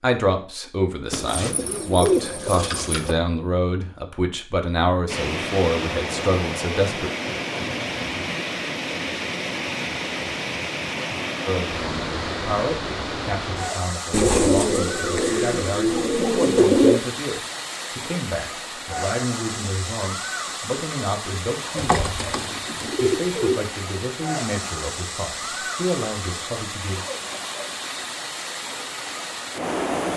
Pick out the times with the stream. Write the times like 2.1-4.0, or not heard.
5.0-30.1.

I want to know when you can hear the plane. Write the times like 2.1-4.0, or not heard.
not heard.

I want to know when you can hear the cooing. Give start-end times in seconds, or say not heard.
1.1-3.1, 14.1-17.0, 21.8-23.6.